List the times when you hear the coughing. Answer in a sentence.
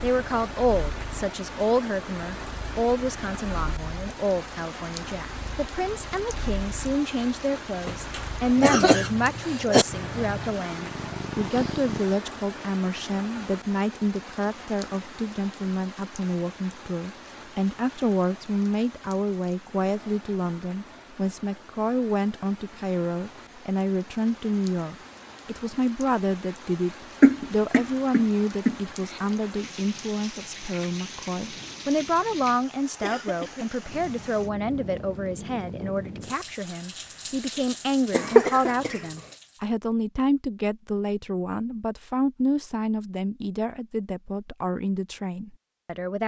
The coughing can be heard from 7.8 to 9.8 s, from 27.2 to 28.8 s and from 38.1 to 39.0 s.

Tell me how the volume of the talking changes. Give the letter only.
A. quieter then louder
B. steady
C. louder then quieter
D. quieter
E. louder
B.